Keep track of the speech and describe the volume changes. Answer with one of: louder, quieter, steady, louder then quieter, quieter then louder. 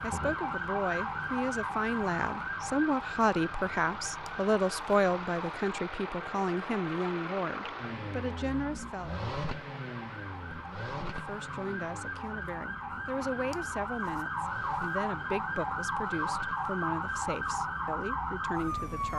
quieter.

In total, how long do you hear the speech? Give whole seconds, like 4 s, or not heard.
17 s.